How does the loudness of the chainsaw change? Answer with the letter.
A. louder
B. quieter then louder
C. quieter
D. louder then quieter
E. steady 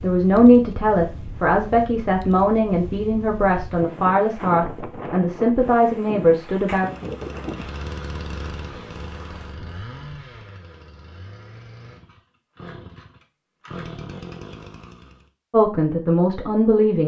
B.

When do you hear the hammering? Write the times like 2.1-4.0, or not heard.
not heard.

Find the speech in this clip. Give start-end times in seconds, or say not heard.
0.0-6.9, 15.5-17.0.